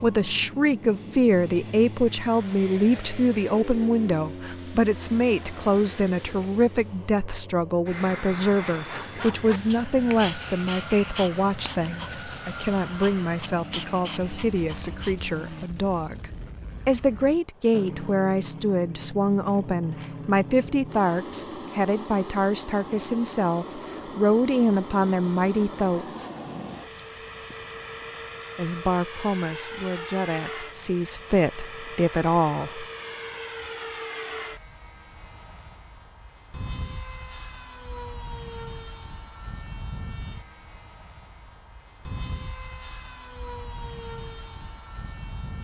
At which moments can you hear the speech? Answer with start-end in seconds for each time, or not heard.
0.0-26.3, 28.6-32.9.